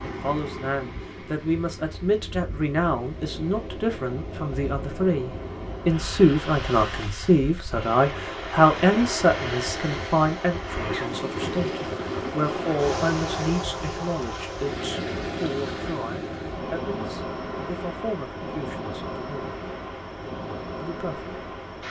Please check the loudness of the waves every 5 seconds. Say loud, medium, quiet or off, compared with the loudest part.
medium, loud, loud, loud, medium.